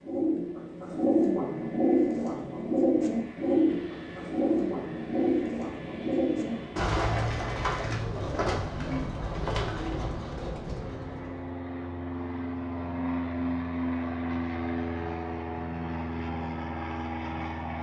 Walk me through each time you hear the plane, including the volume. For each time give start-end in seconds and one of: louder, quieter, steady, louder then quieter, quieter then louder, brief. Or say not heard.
0.0-17.7 louder.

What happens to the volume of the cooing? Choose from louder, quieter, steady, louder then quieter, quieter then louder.
quieter.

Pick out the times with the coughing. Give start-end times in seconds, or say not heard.
not heard.